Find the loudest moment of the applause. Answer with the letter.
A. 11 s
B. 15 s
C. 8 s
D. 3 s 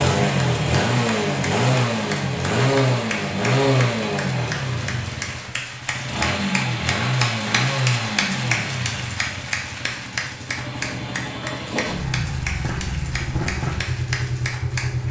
C.